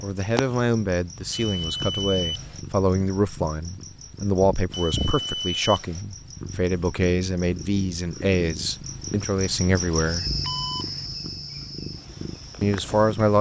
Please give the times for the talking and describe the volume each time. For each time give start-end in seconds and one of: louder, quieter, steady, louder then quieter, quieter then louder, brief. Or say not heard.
0.0-10.3 steady
12.6-13.3 brief.